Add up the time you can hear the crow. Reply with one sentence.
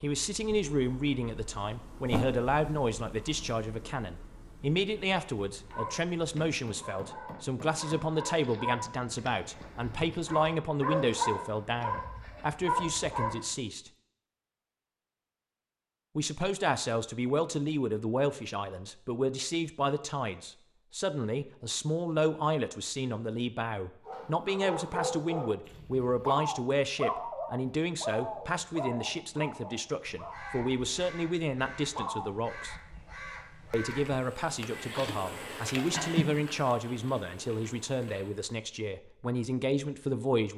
The crow can be heard for 6 seconds in total.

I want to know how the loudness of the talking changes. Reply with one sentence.
The volume of the talking stays about the same.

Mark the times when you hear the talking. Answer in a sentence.
You can hear the talking from 0.0 to 13.9 s, from 16.1 to 32.8 s and from 33.7 to 40.5 s.